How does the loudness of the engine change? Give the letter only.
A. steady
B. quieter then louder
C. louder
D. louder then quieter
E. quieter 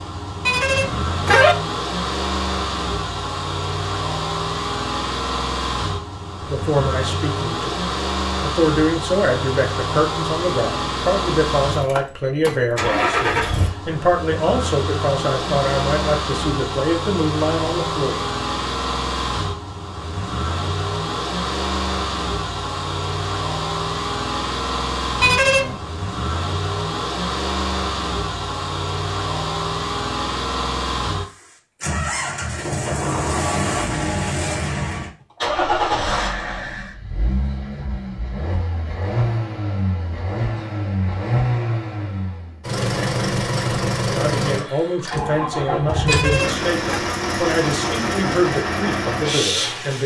A.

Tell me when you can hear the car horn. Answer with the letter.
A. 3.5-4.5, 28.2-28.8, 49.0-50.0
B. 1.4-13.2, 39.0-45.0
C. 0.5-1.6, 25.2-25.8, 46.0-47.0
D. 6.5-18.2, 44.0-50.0
C.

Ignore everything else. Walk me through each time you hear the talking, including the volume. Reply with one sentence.
The talking can be heard from 6.5 to 18.2 s, at a steady volume; and from 44.0 to 50.0 s, at a steady volume.